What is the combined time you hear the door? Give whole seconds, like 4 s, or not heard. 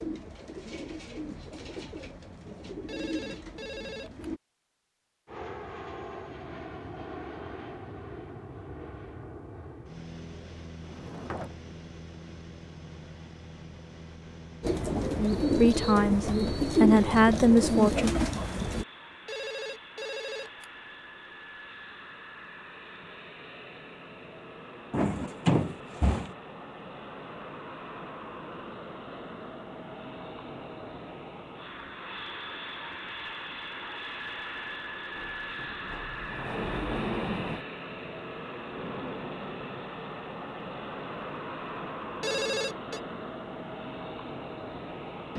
5 s.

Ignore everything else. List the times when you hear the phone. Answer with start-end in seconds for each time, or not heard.
2.9-4.3, 19.2-20.7, 42.2-43.0.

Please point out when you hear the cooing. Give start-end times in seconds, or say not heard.
0.0-4.4, 14.6-18.9.